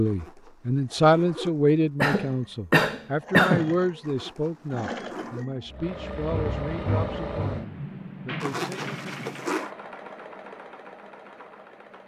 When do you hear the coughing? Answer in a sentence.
The coughing can be heard from 2.0 to 3.7 s.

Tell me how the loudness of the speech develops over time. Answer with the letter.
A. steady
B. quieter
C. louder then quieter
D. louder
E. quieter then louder
B.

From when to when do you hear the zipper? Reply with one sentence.
The zipper can be heard from 0.1 to 1.8 s, from 4.0 to 5.5 s and from 8.4 to 9.7 s.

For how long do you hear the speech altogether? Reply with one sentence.
You can hear the speech for 9 seconds altogether.